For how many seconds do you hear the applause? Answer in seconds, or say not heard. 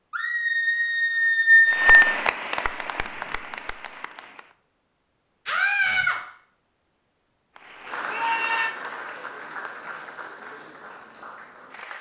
7 s.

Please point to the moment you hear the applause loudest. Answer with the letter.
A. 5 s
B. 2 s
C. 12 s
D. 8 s
B.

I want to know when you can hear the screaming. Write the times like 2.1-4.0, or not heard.
0.1-1.9, 5.5-6.2, 8.1-8.7.